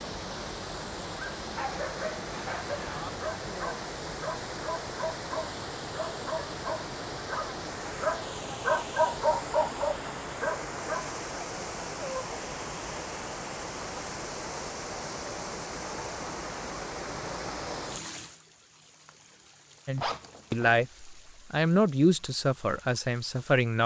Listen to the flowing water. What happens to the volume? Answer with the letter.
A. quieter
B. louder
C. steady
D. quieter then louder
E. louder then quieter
A.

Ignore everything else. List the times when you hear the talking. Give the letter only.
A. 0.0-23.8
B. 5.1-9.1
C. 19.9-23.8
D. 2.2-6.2
C.